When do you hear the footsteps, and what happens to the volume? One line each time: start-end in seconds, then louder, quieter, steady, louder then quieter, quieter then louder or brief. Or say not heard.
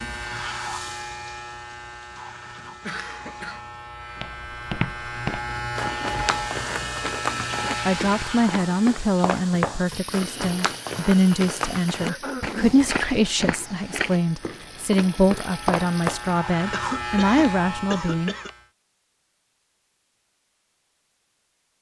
4.2-16.2 steady.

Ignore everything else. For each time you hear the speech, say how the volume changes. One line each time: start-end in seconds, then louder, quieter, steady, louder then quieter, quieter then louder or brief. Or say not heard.
7.8-18.3 steady.